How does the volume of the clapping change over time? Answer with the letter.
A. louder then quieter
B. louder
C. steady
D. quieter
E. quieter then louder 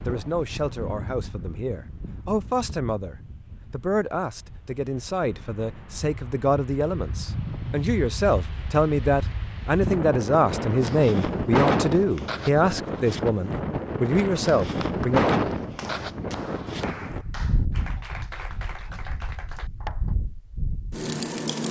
C.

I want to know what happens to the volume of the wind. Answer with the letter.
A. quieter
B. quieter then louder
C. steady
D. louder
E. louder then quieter
E.